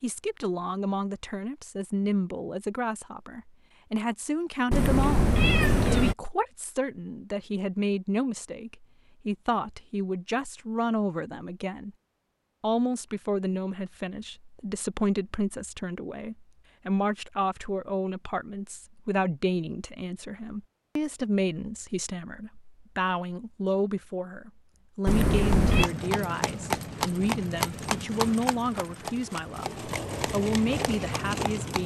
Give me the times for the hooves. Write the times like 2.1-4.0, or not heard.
25.4-31.8.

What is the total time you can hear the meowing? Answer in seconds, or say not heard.
2 s.